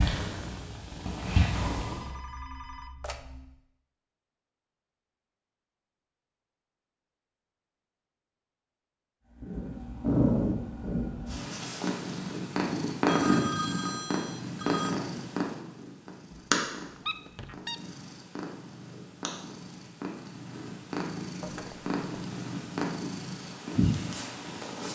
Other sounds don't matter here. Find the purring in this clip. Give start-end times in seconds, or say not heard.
0.0-2.0, 9.4-24.8.